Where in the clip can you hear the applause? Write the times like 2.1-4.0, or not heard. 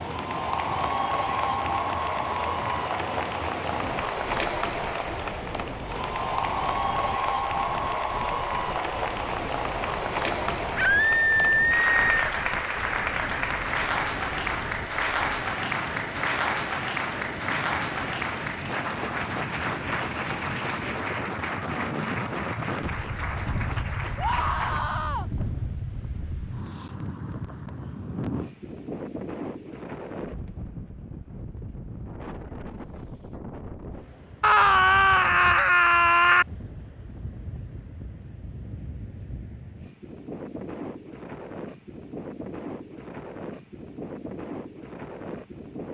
0.0-24.8.